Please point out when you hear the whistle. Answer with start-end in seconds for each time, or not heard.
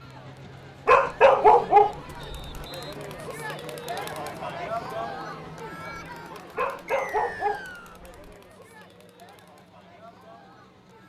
2.2-3.0, 6.8-8.0.